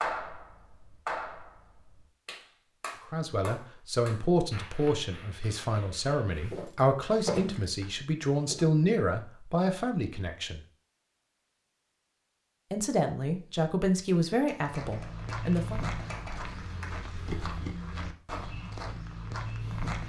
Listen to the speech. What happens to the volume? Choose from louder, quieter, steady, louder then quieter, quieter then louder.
steady.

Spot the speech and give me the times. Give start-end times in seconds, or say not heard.
3.1-10.6, 12.7-15.8.